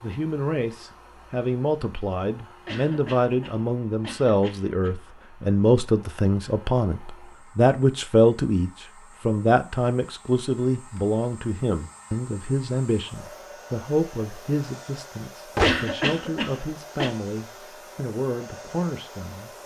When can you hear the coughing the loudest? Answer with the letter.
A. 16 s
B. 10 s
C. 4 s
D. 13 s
A.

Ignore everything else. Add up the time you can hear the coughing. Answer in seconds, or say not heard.
4 s.